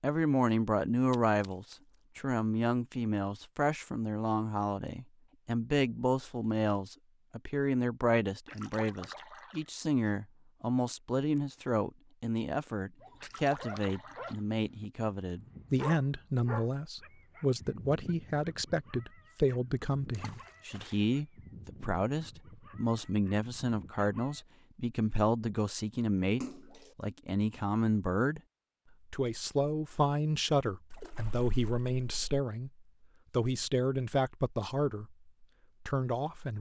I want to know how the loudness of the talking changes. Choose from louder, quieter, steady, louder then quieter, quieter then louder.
steady.